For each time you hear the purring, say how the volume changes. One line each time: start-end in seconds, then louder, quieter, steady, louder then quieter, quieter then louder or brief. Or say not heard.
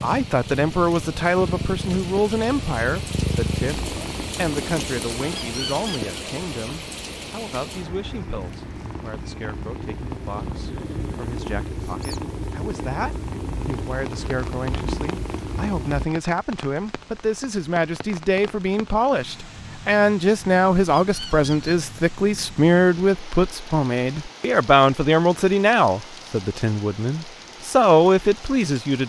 0.0-16.1 quieter then louder.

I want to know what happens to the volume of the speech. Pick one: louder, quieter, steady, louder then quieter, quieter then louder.
quieter then louder.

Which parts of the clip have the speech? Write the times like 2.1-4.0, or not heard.
0.0-29.0.